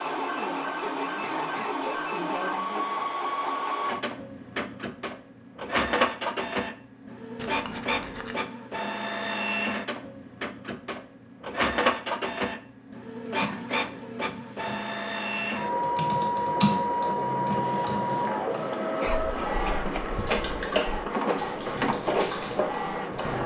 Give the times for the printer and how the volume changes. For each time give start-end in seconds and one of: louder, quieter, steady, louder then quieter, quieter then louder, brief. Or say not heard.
0.0-23.4 steady.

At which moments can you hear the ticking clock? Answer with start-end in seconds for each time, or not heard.
not heard.